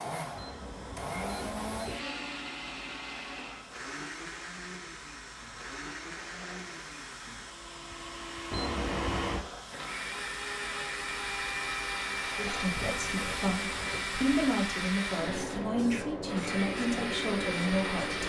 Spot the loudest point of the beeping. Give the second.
9 s.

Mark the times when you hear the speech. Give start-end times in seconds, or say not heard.
12.2-18.2.